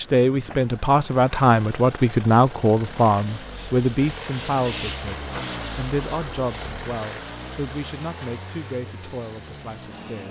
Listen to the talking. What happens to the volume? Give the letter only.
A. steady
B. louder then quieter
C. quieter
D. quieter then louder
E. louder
C.